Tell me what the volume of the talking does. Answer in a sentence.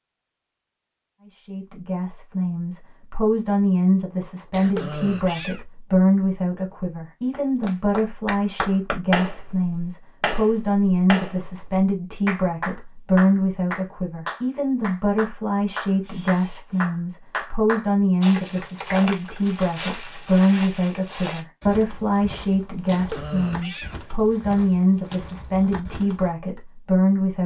The loudness of the talking stays about the same.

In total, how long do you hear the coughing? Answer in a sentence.
The coughing can be heard for 2 seconds in total.